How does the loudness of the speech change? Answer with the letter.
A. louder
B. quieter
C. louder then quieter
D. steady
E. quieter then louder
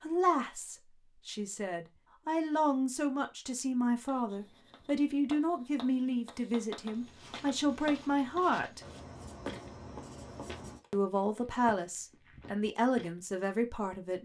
D.